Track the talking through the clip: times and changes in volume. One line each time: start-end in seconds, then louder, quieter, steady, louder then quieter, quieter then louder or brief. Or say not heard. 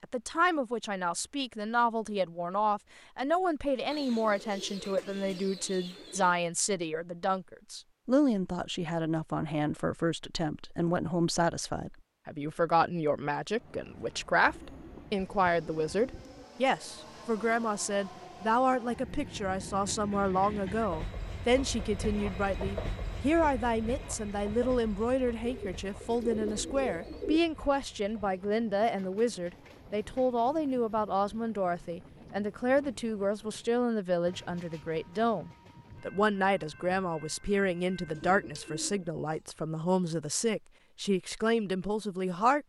0.0-42.6 steady.